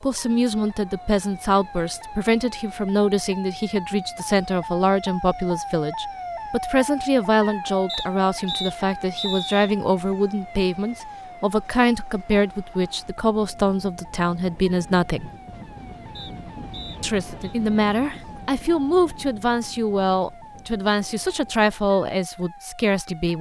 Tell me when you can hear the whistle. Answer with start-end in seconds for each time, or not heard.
7.8-9.8, 16.1-17.6.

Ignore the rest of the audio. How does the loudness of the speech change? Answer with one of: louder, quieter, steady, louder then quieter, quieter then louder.
steady.